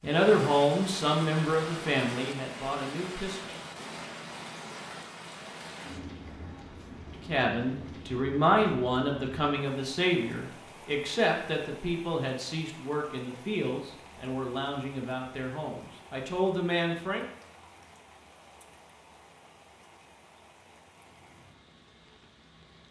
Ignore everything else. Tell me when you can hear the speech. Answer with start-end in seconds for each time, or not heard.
0.0-3.5, 7.2-17.2.